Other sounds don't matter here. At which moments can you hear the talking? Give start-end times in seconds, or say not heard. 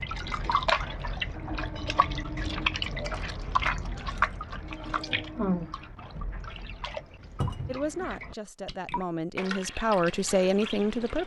7.7-11.2.